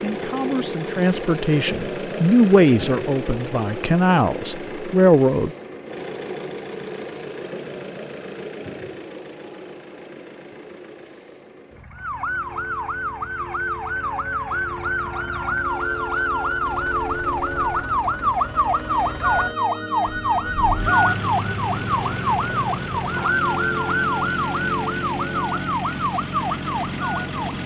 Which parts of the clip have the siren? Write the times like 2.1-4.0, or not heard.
11.9-27.6.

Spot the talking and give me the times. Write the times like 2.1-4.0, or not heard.
0.0-5.5.